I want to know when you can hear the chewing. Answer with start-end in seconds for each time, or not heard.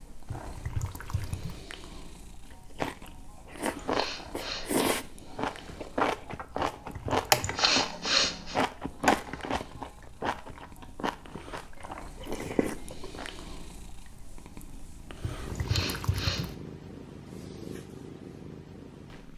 2.5-13.4.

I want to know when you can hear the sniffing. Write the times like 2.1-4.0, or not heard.
3.8-4.7, 7.4-8.6, 15.6-16.5.